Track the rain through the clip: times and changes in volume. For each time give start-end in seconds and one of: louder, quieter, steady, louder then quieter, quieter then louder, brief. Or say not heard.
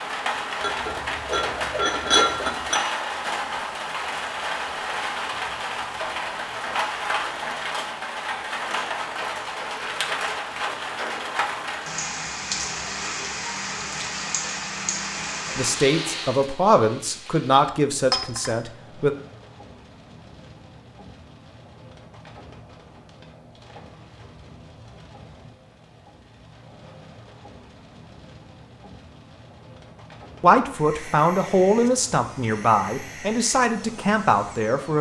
0.0-34.9 quieter.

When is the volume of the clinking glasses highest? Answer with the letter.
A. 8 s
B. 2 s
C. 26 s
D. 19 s
B.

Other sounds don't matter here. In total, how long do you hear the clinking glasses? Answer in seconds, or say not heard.
3 s.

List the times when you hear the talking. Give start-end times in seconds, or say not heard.
15.6-19.1, 30.4-34.9.